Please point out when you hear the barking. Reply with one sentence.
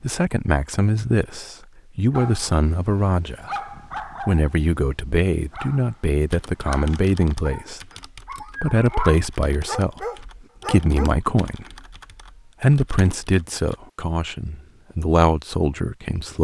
The barking can be heard from 2.1 to 11.1 s.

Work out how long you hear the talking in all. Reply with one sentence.
The talking can be heard for 14 seconds in total.